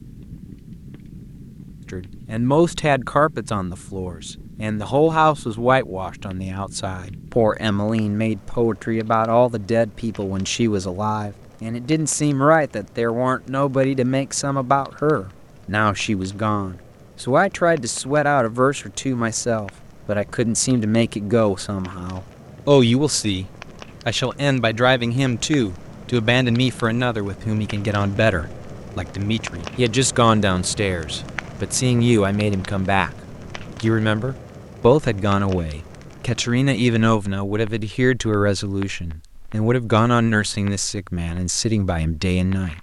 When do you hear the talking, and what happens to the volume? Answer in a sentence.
The talking can be heard from 1.9 to 42.7 s, at a steady volume.